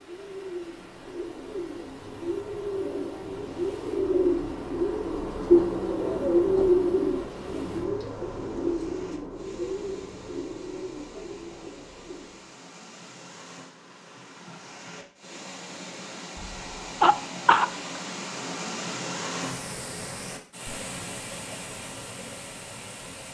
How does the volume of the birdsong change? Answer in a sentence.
The volume of the birdsong goes up, then down.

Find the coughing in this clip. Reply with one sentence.
You can hear the coughing from 16.4 to 17.7 s.